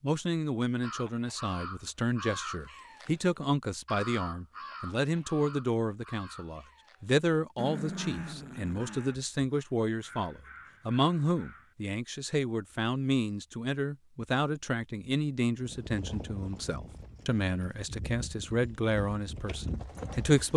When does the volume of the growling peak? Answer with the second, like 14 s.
8 s.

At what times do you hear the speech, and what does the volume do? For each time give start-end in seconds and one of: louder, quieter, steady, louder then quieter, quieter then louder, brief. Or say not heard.
0.0-20.5 steady.